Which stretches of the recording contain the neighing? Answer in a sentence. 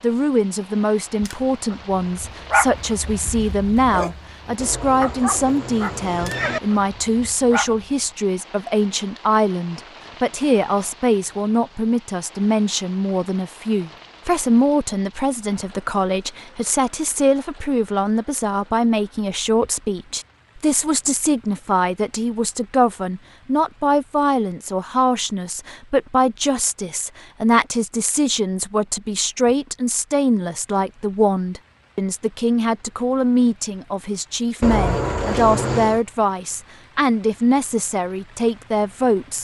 You can hear the neighing from 4.5 to 6.6 s and from 34.6 to 36.0 s.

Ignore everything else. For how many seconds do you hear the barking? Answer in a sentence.
The barking can be heard for 7 seconds in total.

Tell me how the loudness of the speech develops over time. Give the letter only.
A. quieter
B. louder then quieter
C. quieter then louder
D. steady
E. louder
D.